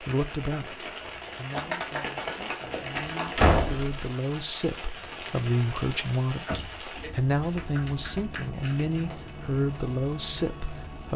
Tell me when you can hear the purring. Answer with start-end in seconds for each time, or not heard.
not heard.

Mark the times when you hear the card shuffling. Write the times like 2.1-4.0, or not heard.
1.5-3.5, 7.3-9.3.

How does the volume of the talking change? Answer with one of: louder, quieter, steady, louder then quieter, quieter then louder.
louder.